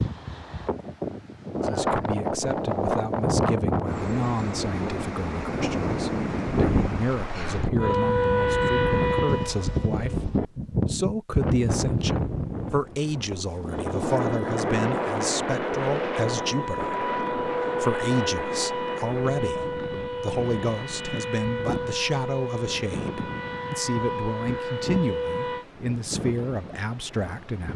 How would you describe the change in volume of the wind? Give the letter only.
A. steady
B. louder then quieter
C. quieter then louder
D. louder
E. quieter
E.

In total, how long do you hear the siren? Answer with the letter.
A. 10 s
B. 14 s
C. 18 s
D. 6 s
B.